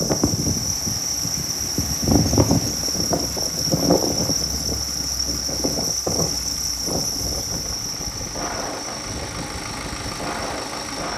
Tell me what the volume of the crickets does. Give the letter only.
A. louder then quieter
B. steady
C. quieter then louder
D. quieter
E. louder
D.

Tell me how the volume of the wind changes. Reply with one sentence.
The volume of the wind goes down.